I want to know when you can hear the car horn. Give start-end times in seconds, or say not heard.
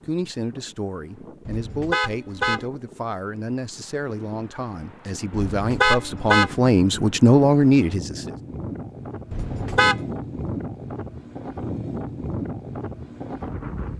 1.4-2.6, 5.3-6.5, 9.3-10.0.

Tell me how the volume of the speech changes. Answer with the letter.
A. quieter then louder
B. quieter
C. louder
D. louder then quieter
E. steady
C.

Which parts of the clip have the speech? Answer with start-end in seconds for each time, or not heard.
0.0-8.3.